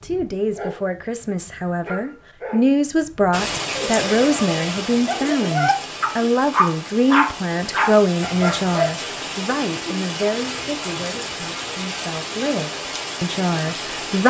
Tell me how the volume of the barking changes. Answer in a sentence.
The volume of the barking goes up.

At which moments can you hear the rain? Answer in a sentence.
The rain can be heard from 3.3 to 14.2 s.